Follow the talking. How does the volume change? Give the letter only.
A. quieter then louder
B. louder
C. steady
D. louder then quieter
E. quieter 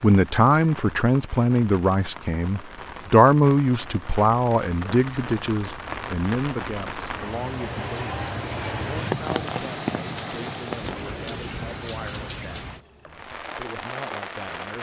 E.